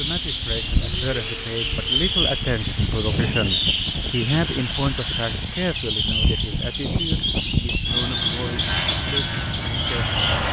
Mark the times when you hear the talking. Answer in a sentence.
The talking can be heard from 0.0 to 10.2 s.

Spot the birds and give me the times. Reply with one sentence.
The birds can be heard from 0.0 to 10.4 s.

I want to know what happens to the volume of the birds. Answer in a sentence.
The loudness of the birds stays about the same.